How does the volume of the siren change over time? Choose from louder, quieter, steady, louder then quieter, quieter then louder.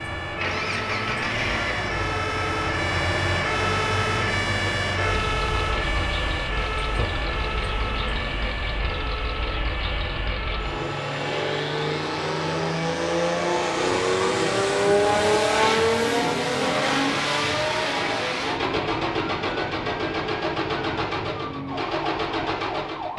quieter.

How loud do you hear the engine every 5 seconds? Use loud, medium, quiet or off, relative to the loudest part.
medium, medium, loud, loud, medium.